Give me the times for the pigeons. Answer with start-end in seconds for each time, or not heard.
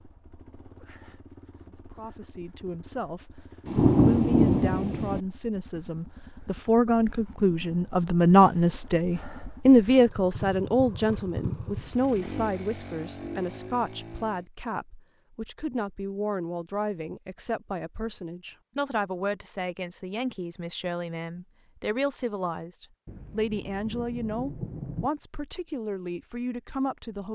not heard.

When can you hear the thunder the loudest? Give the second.
4 s.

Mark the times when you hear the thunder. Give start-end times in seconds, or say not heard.
3.6-5.2, 23.1-25.1.